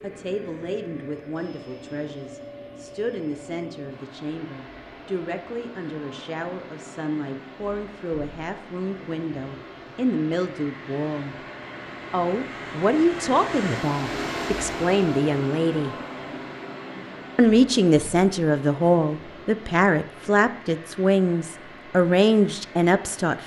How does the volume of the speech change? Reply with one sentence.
The loudness of the speech goes up.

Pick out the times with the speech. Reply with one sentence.
The speech can be heard from 0.0 to 11.3 s, from 12.1 to 15.9 s and from 17.4 to 23.4 s.